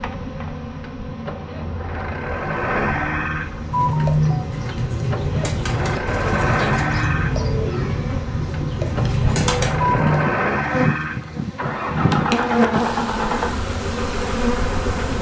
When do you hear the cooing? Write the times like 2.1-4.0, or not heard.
3.6-10.2.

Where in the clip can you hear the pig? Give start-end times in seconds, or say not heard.
not heard.